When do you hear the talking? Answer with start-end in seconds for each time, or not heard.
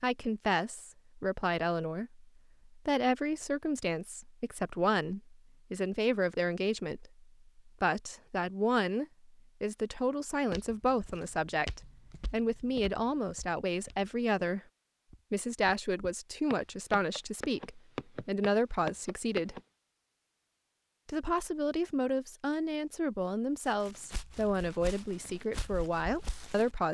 0.0-14.6, 15.3-19.6, 21.1-26.8.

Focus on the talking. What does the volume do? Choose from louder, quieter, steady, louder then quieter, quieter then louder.
steady.